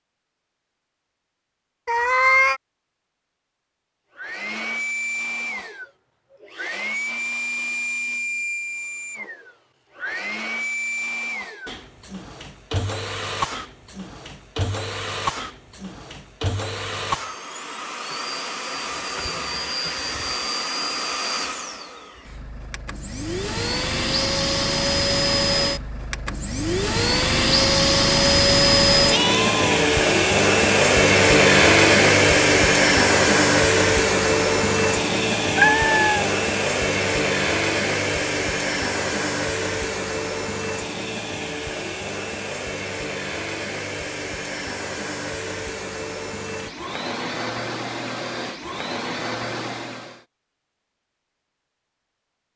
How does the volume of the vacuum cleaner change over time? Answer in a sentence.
The volume of the vacuum cleaner goes up, then down.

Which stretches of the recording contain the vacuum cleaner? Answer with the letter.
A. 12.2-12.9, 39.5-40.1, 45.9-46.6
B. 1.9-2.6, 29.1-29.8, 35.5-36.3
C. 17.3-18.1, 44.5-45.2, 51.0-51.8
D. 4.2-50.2
D.